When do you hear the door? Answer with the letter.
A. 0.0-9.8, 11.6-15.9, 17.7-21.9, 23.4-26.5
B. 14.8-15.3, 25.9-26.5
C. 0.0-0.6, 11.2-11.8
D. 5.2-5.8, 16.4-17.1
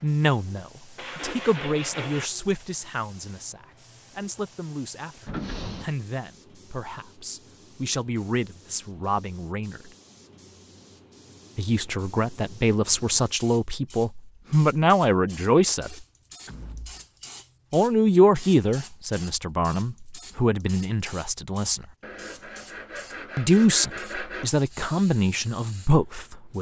D.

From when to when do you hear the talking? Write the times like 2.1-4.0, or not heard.
0.0-9.8, 11.6-15.9, 17.7-21.9, 23.4-26.5.